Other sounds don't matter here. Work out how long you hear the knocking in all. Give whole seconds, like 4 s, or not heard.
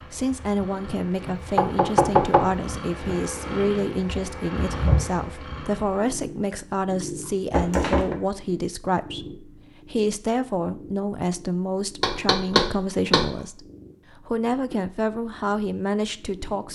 3 s.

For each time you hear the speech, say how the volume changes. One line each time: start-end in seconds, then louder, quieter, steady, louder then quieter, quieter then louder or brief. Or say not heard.
0.1-16.7 steady.